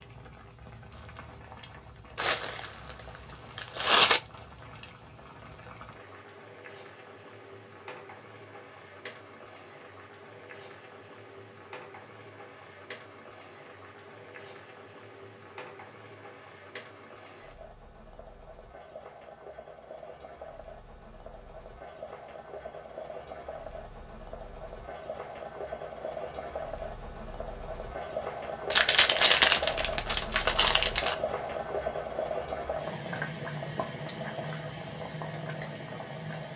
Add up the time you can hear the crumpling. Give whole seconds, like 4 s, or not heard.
4 s.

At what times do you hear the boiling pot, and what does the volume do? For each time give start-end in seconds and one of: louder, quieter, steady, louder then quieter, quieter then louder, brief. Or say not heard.
0.0-36.5 louder.